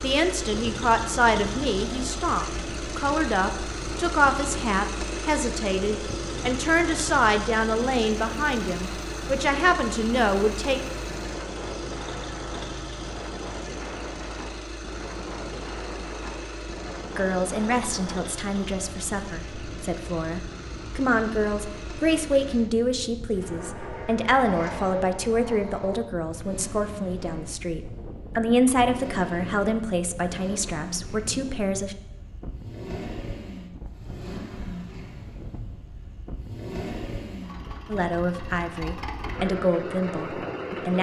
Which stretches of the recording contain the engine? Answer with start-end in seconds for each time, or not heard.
0.0-40.9.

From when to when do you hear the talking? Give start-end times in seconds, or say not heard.
0.0-10.8, 17.1-31.9, 37.9-40.9.